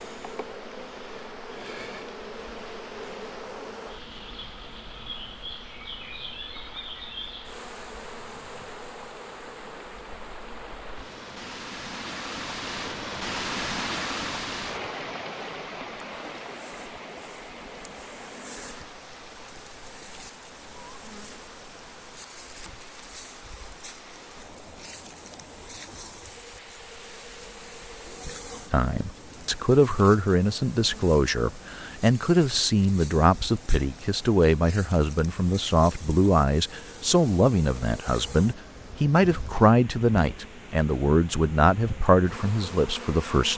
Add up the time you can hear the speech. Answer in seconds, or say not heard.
15 s.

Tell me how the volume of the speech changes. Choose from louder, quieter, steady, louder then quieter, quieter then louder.
steady.